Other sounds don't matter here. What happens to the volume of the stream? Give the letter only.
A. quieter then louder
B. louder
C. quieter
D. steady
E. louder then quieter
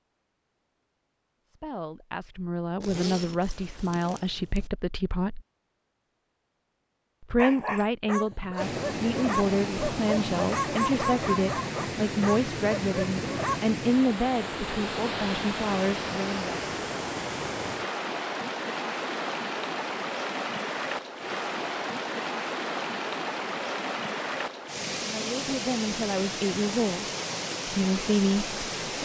D.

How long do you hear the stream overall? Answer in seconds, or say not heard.
20 s.